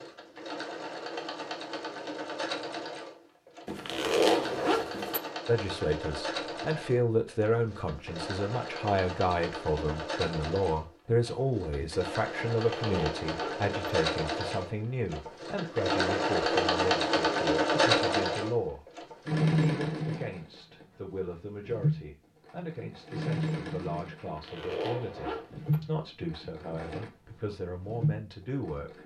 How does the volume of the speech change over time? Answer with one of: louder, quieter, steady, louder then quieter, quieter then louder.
quieter.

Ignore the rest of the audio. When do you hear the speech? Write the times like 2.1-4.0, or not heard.
5.5-29.0.